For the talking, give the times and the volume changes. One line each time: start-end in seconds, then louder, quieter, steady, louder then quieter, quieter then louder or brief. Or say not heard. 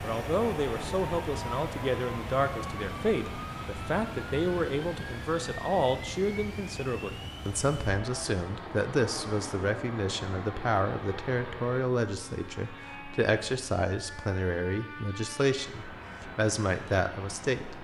0.0-17.7 steady.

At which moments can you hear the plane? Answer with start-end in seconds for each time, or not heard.
0.0-17.7.